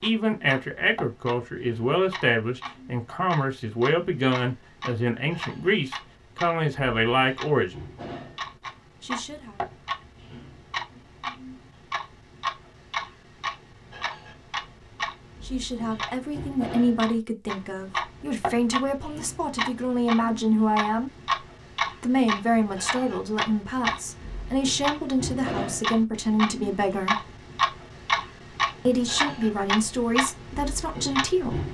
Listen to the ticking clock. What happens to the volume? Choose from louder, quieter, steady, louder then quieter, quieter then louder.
louder.